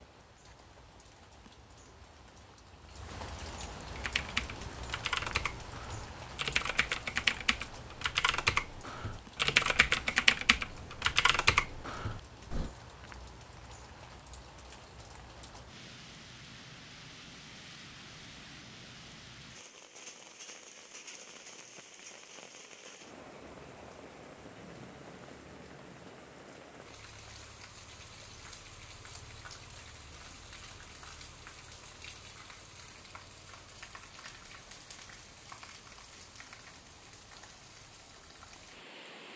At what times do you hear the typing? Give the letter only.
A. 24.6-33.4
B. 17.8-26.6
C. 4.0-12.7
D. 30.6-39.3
C.